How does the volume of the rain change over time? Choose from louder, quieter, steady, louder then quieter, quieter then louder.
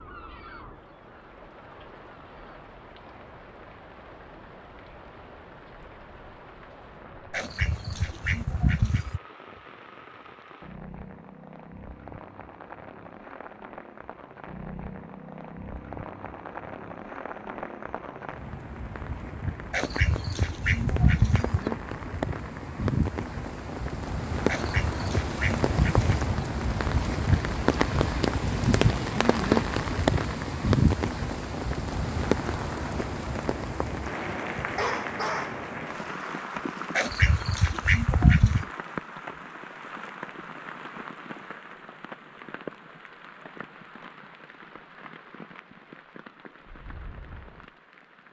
louder then quieter.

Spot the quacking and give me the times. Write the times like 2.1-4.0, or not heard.
7.3-9.2, 19.7-21.6, 24.4-26.1, 37.0-38.6.